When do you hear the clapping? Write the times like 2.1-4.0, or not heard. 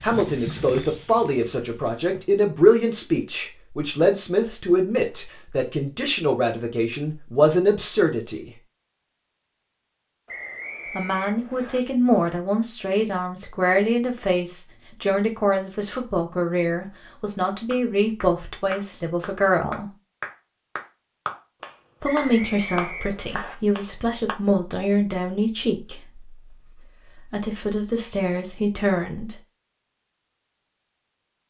17.7-24.4.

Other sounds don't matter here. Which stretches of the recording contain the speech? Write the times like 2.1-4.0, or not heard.
0.0-8.5, 10.9-19.9, 22.0-29.4.